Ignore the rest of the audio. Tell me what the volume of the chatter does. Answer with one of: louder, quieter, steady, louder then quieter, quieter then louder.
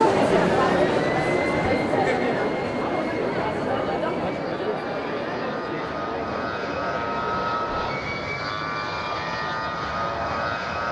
quieter.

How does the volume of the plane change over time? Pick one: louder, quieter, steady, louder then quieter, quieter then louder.
quieter then louder.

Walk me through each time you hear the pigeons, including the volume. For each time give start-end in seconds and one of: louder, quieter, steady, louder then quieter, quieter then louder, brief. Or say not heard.
not heard.